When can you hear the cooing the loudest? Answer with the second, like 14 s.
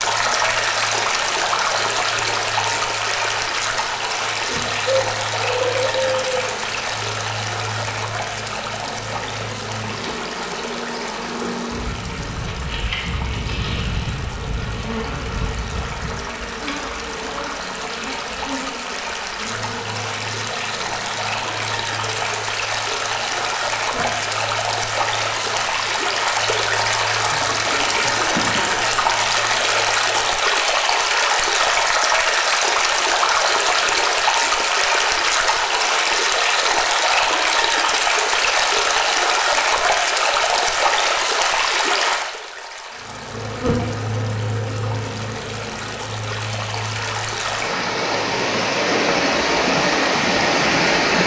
6 s.